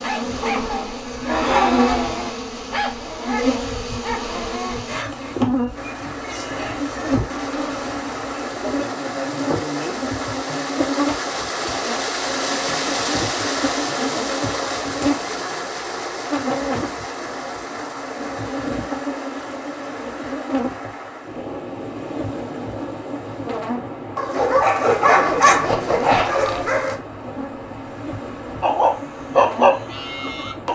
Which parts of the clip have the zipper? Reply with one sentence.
The zipper can be heard from 25.0 to 27.0 s.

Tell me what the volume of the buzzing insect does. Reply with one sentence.
The loudness of the buzzing insect goes down.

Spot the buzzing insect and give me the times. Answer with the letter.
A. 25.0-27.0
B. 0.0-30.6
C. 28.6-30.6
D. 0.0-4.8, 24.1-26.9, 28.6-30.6
B.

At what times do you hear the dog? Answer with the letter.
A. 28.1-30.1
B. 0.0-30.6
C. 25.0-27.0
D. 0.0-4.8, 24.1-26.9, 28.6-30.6
D.